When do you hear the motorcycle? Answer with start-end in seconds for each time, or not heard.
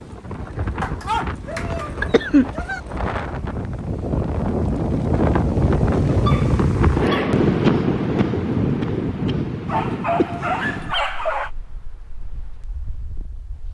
not heard.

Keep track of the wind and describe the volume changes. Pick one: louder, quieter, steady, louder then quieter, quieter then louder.
louder then quieter.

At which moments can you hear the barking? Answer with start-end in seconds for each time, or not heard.
0.8-2.8, 6.2-7.4, 9.7-11.5.